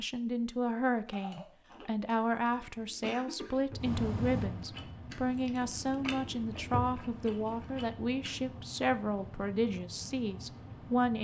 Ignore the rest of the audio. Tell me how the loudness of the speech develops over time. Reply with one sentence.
The loudness of the speech stays about the same.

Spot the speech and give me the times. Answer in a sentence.
You can hear the speech from 0.0 to 11.1 s.